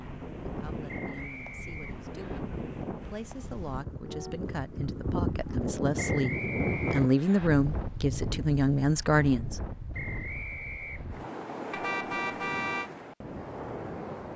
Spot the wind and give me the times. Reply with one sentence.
The wind can be heard from 0.0 to 14.3 s.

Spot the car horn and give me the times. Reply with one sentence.
You can hear the car horn from 4.0 to 4.5 s and from 11.7 to 12.9 s.